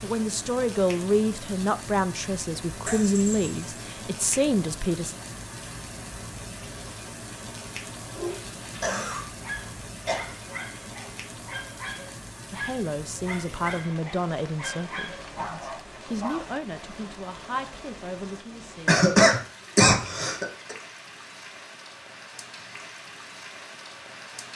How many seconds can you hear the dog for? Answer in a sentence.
The dog can be heard for 8 seconds in total.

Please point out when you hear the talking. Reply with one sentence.
The talking can be heard from 0.0 to 5.2 s and from 12.5 to 19.0 s.